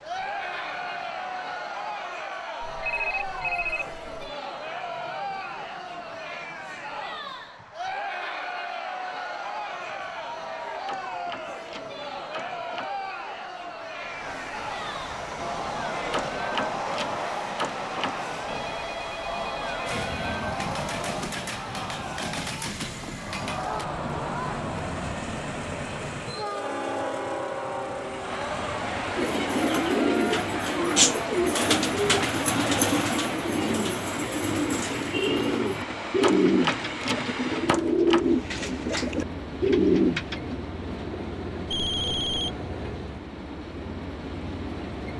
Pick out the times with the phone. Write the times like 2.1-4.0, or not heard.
2.6-4.3, 18.4-20.4, 41.7-42.5.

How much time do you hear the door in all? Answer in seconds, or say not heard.
6 s.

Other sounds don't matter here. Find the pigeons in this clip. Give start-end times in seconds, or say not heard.
29.1-40.6.